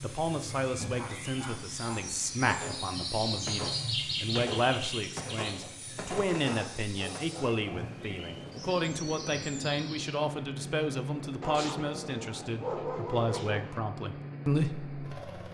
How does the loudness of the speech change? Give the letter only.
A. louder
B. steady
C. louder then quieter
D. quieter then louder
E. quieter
B.